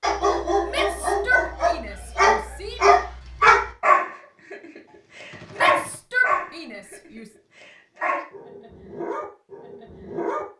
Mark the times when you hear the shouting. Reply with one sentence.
You can hear the shouting from 0.7 to 2.9 s and from 5.5 to 7.3 s.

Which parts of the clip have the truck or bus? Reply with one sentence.
The truck or bus can't be heard in this clip.